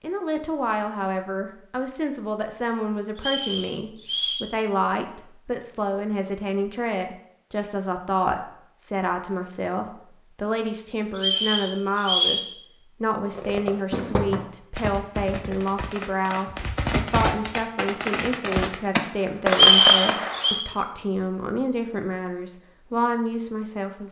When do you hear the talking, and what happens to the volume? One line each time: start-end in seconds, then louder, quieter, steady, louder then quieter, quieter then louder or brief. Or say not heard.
0.0-24.0 steady.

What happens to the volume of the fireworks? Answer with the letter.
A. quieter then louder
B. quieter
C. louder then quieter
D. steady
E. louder
A.